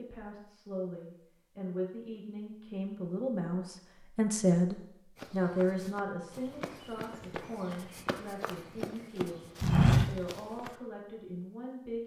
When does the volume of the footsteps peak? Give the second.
10 s.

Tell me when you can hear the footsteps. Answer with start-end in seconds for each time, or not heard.
5.2-10.7.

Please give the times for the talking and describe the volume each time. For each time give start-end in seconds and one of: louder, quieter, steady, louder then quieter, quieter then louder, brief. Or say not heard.
0.0-12.0 louder then quieter.